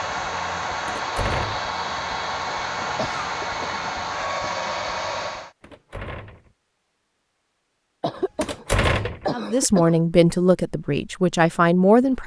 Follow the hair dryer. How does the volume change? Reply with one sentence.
The volume of the hair dryer stays about the same.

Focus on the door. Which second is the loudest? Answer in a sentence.
The volume of the door peaks at 9 seconds.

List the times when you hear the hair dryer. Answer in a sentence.
The hair dryer can be heard from 0.0 to 5.5 s.